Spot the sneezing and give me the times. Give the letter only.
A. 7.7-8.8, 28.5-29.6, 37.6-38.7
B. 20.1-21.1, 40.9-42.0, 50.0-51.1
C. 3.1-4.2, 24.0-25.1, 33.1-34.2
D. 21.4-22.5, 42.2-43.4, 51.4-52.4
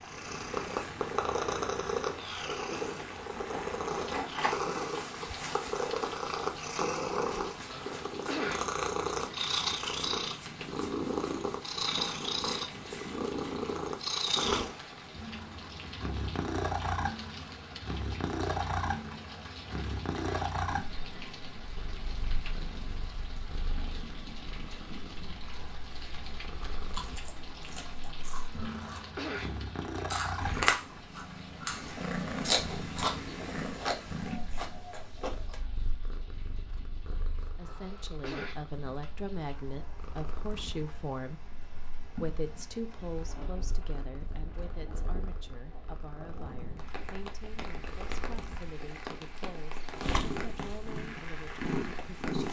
A.